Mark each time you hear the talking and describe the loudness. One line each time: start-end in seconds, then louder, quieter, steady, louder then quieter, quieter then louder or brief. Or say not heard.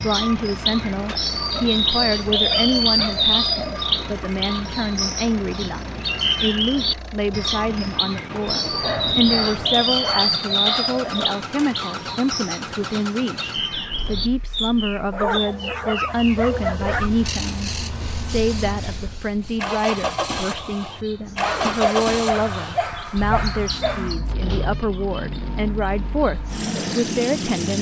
0.0-27.7 steady.